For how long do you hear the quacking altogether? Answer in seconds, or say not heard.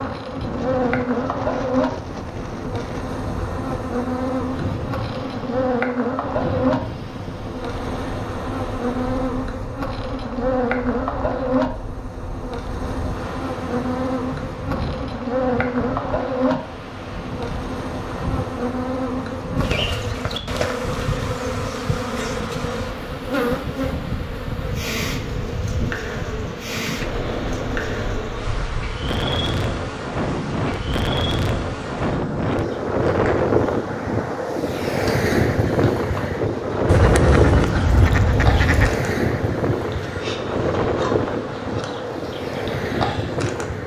2 s.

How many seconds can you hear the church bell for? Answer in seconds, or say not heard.
not heard.